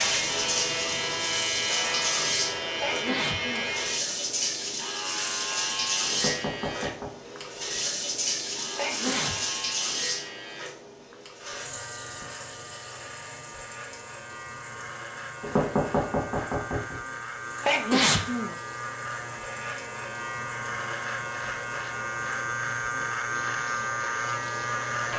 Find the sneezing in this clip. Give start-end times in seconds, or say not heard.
2.8-3.6, 8.8-9.4, 17.6-18.6.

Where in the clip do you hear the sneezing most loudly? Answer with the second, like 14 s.
18 s.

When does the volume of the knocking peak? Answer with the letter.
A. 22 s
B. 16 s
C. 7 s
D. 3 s
B.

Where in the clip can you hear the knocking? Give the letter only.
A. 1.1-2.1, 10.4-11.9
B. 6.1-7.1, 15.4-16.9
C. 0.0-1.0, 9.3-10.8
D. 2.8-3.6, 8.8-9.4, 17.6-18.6
B.